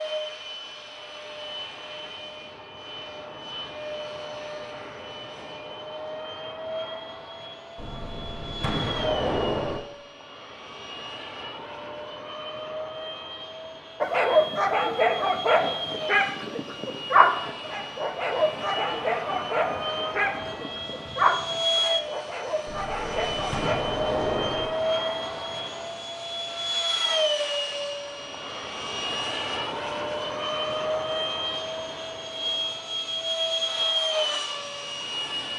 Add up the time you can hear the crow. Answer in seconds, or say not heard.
not heard.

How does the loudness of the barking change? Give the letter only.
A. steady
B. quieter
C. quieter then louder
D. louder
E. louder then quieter
B.